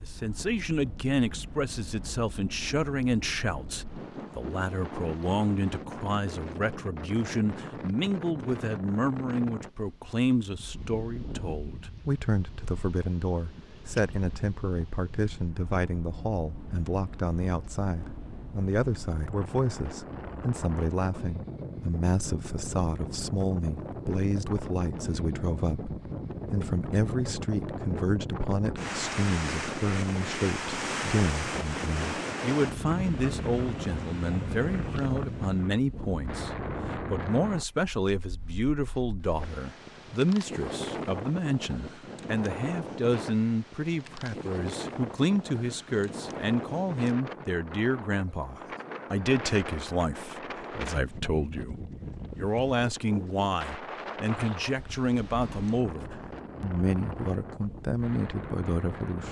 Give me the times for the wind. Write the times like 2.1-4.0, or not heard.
0.0-59.2.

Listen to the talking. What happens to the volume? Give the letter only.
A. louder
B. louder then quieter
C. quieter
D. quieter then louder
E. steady
E.